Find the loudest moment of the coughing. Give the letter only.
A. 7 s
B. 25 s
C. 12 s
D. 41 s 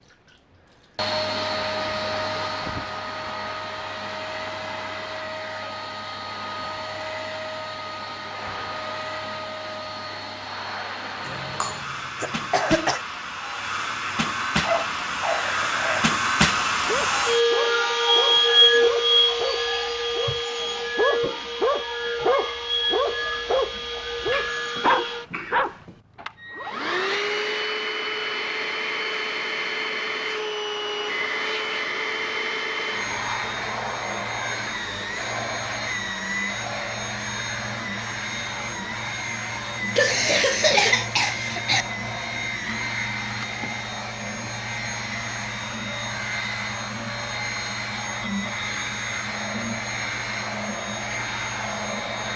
D.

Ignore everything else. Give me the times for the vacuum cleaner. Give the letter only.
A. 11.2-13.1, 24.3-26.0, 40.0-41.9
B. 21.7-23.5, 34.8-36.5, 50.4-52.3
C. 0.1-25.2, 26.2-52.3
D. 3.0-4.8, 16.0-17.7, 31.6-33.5
C.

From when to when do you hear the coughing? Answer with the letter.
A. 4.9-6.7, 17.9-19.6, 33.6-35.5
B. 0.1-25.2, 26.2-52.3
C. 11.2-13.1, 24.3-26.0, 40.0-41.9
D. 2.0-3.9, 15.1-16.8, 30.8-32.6
C.